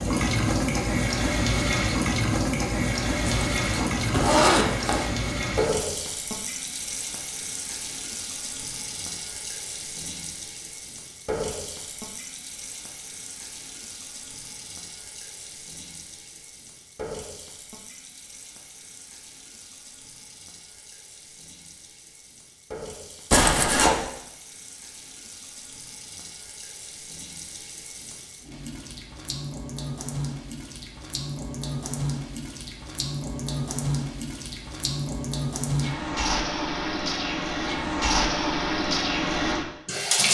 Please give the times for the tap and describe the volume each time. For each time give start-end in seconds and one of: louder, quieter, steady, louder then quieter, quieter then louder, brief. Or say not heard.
0.0-40.2 quieter then louder.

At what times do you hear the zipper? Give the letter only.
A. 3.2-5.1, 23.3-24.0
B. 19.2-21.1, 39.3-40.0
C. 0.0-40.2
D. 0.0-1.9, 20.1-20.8
A.